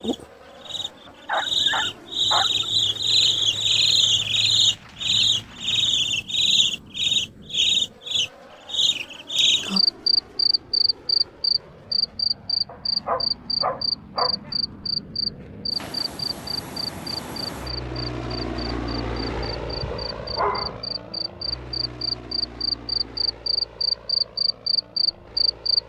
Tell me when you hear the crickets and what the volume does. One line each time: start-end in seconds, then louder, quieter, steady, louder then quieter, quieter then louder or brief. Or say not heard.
0.0-25.8 quieter then louder.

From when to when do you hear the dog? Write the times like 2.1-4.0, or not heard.
1.1-2.6, 12.7-15.1, 19.2-20.8.